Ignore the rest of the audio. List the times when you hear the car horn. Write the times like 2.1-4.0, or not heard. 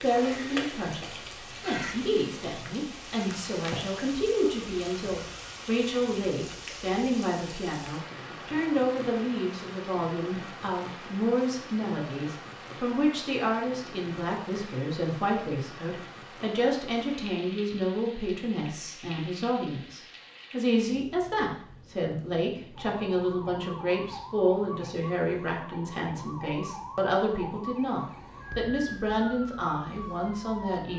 not heard.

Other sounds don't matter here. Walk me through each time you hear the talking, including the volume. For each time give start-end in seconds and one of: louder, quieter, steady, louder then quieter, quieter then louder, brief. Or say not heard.
0.0-30.9 steady.